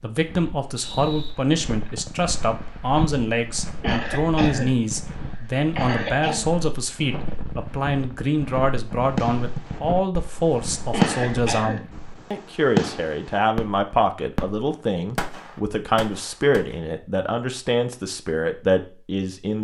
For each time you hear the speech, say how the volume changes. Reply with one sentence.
You can hear the speech from 0.0 to 19.5 s, at a steady volume.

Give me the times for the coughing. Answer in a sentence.
The coughing can be heard from 3.8 to 4.8 s, from 5.8 to 6.5 s and from 10.9 to 11.8 s.